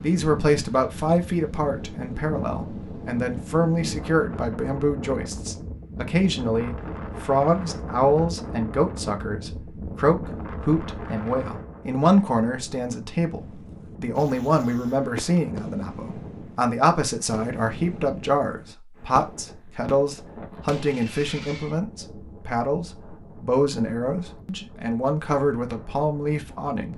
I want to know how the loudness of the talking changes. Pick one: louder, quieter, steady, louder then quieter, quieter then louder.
steady.